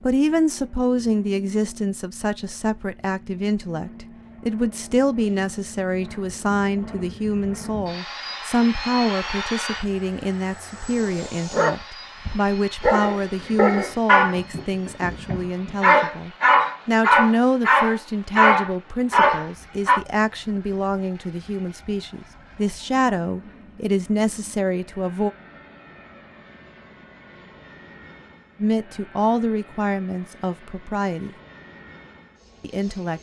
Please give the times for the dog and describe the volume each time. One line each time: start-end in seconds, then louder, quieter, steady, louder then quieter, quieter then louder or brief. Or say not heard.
11.3-20.0 louder.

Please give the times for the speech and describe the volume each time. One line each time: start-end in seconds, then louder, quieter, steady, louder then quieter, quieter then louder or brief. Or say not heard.
0.0-25.3 steady
28.6-31.3 brief
32.6-33.1 brief.